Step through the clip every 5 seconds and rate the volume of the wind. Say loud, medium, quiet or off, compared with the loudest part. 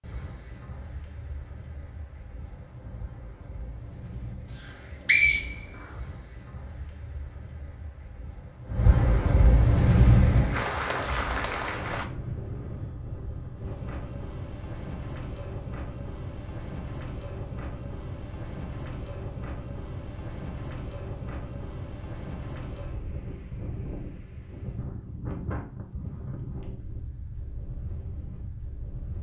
quiet, loud, loud, medium, medium, medium.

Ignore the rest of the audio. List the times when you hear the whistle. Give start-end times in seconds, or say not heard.
4.5-5.7.